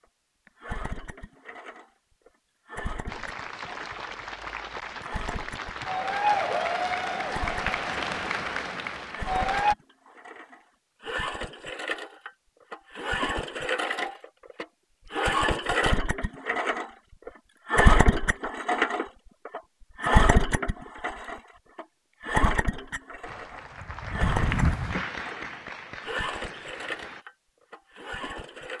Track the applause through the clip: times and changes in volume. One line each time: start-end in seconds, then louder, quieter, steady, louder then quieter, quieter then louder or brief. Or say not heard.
3.0-9.8 louder then quieter
23.2-27.2 louder then quieter.